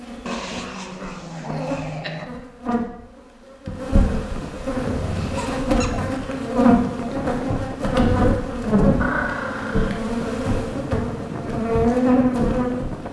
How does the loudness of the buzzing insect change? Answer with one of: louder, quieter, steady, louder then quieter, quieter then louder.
louder.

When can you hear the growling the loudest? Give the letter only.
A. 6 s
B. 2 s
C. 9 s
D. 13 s
C.